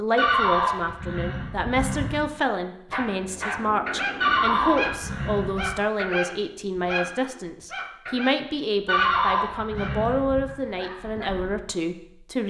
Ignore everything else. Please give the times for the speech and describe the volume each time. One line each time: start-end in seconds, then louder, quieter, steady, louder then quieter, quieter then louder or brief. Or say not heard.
0.0-12.4 steady.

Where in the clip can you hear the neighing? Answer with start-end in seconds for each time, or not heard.
0.1-2.2, 4.2-5.8, 8.8-10.5.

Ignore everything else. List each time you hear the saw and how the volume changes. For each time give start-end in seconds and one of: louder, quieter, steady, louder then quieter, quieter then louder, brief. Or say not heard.
not heard.